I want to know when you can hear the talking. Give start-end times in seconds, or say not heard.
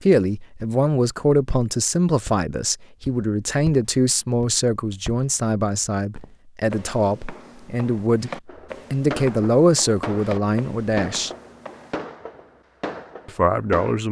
0.0-11.3, 13.2-14.0.